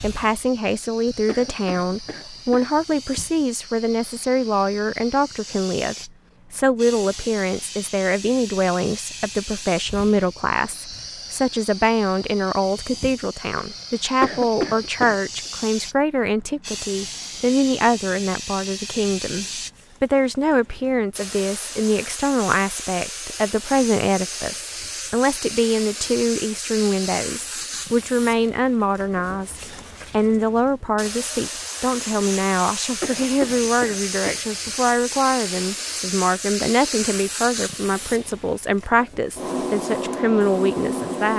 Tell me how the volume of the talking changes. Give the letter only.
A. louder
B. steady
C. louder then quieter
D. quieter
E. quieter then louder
B.